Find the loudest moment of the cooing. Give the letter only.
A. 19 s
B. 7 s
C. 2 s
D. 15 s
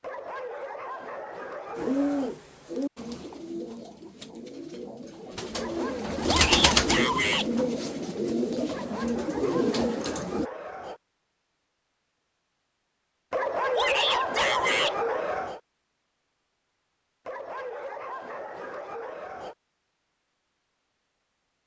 B.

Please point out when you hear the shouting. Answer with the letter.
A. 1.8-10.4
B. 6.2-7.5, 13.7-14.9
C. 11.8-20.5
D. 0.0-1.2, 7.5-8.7
B.